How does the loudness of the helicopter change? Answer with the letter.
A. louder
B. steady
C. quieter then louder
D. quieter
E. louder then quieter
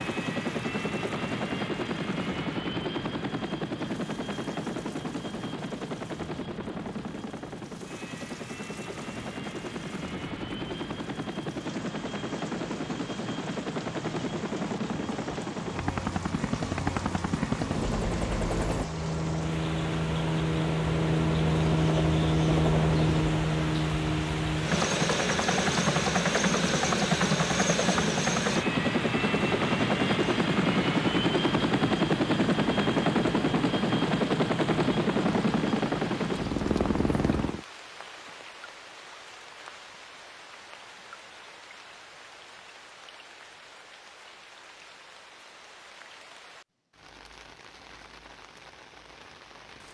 A.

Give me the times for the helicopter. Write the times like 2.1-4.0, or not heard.
0.0-37.6.